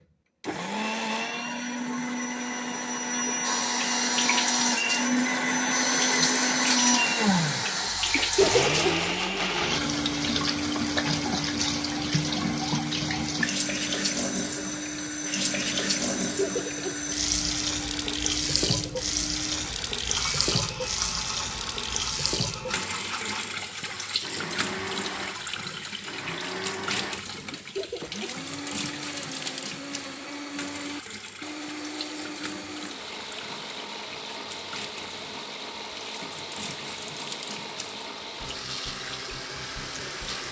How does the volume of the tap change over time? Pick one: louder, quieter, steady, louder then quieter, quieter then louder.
quieter.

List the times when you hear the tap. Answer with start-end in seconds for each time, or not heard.
3.4-40.4.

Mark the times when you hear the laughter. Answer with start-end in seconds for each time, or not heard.
8.2-8.8, 16.2-17.0, 27.5-28.4.